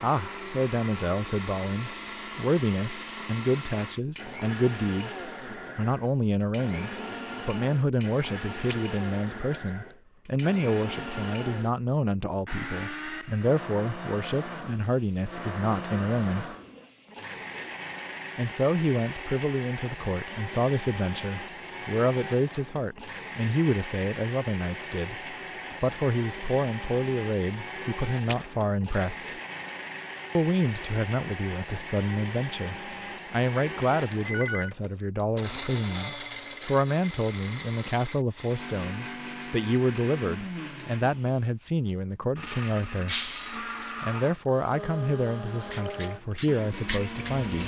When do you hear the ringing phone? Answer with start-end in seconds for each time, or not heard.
33.8-34.8.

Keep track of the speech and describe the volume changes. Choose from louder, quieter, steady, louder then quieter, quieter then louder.
steady.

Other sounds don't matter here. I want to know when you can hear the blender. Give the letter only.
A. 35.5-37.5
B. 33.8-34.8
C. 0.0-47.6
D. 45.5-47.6
C.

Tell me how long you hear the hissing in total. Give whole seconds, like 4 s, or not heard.
2 s.